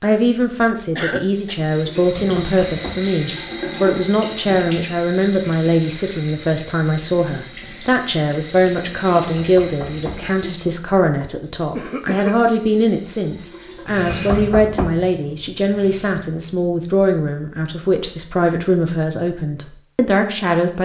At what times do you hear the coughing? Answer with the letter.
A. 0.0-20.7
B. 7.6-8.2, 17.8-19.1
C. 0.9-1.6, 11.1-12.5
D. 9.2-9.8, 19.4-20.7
C.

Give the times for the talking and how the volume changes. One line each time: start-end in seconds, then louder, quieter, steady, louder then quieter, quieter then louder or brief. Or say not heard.
0.0-20.7 steady.